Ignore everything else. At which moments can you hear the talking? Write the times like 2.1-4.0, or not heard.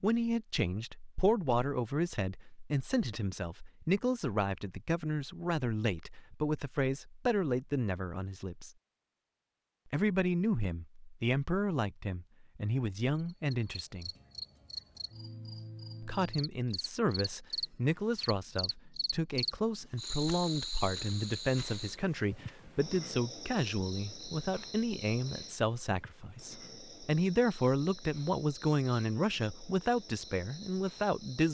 0.0-8.7, 9.9-14.1, 16.0-31.4.